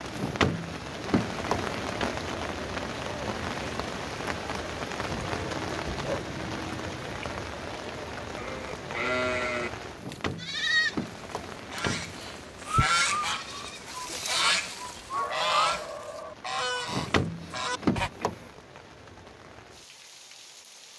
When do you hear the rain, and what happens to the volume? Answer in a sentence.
The rain can be heard from 0.0 to 20.9 s, getting quieter.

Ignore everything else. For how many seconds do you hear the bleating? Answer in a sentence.
You can hear the bleating for 8 seconds altogether.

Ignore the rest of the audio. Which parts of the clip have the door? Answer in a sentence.
The door can be heard from 0.1 to 2.1 s, from 9.9 to 12.3 s and from 16.9 to 18.4 s.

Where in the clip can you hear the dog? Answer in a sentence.
The dog can be heard from 5.1 to 7.0 s and from 14.3 to 16.4 s.